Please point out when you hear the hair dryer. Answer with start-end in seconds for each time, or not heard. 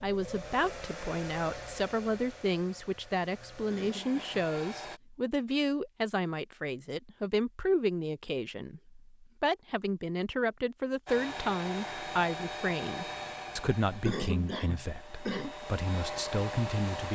0.0-5.0, 11.1-17.1.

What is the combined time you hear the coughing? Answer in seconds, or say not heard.
2 s.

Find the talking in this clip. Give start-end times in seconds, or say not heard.
0.0-17.1.